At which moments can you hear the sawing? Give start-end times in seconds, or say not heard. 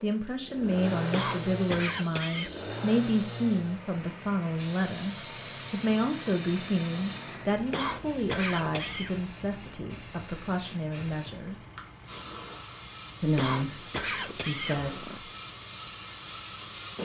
not heard.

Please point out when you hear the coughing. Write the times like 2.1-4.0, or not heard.
1.1-2.5, 7.7-9.2, 13.3-15.2.